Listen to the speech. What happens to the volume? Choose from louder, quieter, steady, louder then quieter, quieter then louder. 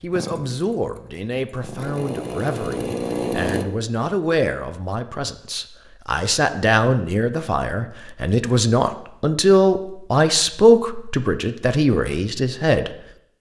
louder.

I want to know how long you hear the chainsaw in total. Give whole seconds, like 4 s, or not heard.
4 s.